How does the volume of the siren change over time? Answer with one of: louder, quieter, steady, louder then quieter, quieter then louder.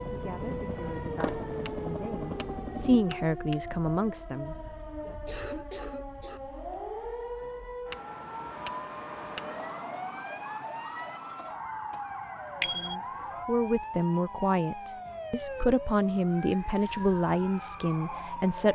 steady.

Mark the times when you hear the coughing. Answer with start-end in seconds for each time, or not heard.
4.5-6.4, 11.3-12.1.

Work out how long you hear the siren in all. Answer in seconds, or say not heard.
19 s.